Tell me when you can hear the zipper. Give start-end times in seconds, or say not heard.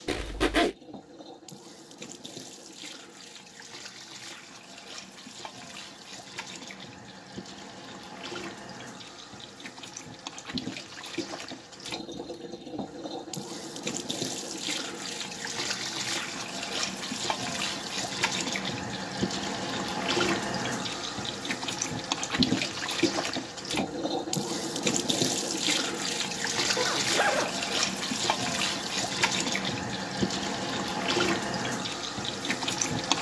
0.1-0.8, 26.8-27.6.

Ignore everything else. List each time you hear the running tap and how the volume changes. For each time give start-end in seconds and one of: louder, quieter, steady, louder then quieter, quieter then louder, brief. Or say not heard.
0.0-33.1 louder.